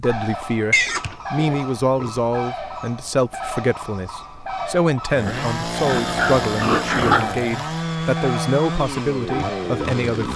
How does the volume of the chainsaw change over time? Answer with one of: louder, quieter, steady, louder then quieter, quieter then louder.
steady.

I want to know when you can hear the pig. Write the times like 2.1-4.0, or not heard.
0.7-2.1, 5.2-7.5.